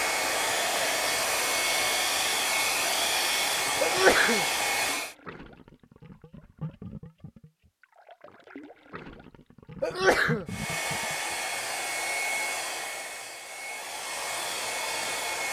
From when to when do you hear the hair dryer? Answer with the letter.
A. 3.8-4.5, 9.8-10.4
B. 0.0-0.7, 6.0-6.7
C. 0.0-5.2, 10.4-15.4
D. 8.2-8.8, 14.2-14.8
C.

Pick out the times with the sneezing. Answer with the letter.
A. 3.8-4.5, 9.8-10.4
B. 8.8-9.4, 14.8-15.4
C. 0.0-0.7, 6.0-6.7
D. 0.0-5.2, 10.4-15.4
A.